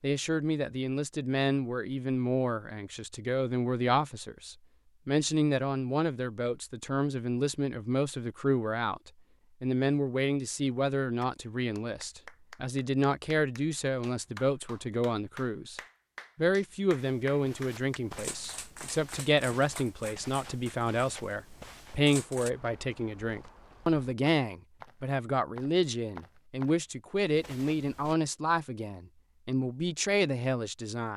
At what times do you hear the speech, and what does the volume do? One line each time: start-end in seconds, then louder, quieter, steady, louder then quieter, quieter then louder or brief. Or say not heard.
0.0-31.1 steady.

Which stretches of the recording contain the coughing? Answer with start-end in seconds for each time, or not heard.
not heard.